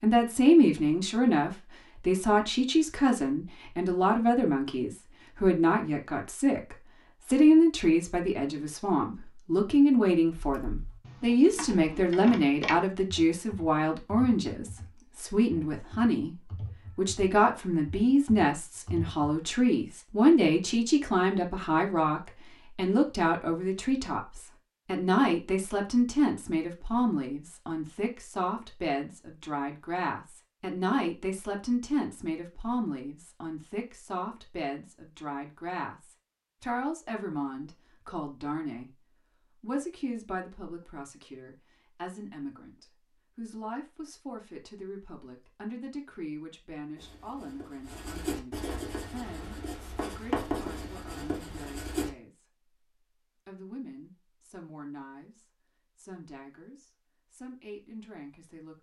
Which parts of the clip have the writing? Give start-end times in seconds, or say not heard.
47.0-52.1.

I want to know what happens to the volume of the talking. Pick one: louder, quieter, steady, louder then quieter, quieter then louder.
quieter.